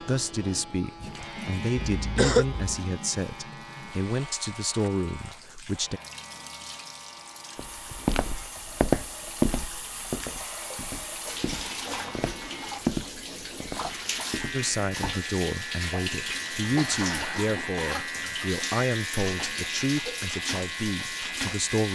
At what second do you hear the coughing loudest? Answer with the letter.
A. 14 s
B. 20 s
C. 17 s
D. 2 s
D.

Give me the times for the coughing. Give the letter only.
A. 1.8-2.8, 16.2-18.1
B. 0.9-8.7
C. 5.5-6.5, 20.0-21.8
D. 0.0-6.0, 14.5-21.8
A.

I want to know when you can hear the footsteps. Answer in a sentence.
The footsteps can be heard from 7.5 to 15.3 s.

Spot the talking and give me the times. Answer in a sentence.
You can hear the talking from 0.0 to 6.0 s and from 14.5 to 21.8 s.